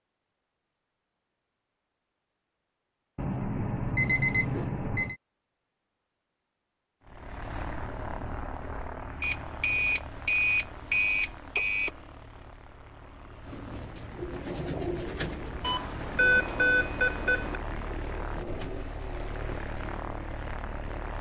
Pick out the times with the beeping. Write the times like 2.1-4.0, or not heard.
3.1-5.2, 9.2-11.9, 15.6-17.6.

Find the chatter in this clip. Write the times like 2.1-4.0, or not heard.
not heard.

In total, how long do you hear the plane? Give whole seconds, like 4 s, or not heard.
14 s.